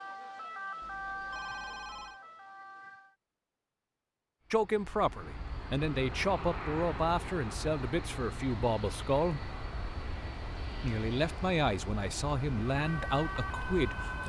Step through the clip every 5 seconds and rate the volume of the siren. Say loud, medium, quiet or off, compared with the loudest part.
loud, off, loud.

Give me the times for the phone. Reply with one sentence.
The phone can be heard from 0.8 to 2.2 s.